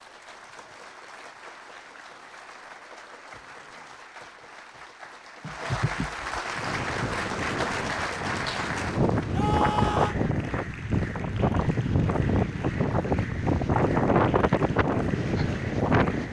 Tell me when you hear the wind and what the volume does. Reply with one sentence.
You can hear the wind from 6.5 to 16.2 s, getting louder.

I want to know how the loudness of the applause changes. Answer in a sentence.
The loudness of the applause goes up, then down.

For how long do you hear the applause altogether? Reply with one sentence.
You can hear the applause for 16 seconds altogether.